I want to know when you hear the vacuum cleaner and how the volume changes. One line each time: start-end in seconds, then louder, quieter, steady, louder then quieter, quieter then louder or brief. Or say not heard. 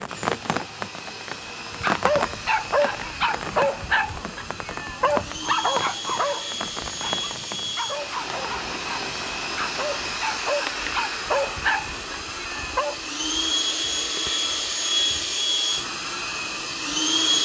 0.0-17.3 louder.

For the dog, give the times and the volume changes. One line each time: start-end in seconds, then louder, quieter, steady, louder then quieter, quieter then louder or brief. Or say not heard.
1.8-12.9 quieter then louder.